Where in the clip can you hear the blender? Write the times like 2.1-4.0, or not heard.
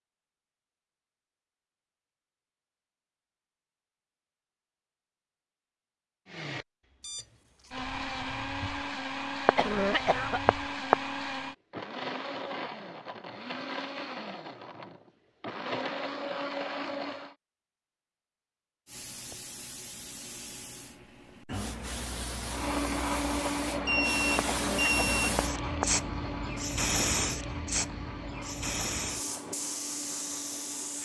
6.2-17.4, 22.4-31.0.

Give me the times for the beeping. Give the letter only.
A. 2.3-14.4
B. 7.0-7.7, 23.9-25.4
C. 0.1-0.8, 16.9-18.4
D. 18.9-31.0
B.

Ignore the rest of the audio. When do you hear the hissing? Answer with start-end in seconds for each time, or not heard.
18.9-31.0.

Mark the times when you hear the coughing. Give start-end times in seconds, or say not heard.
9.4-10.9, 24.4-25.9.